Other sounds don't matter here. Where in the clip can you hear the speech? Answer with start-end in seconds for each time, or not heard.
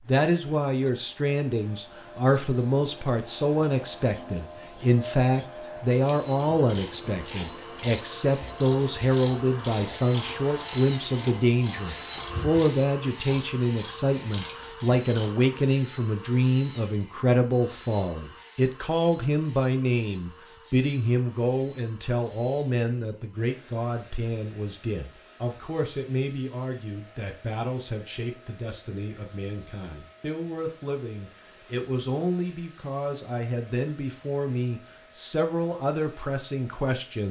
0.1-37.2.